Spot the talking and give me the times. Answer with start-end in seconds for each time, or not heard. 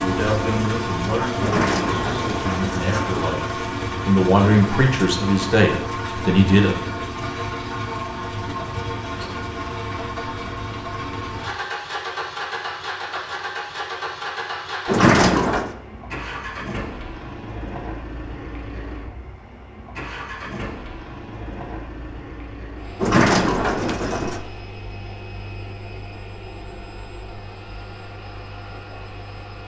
0.0-6.8.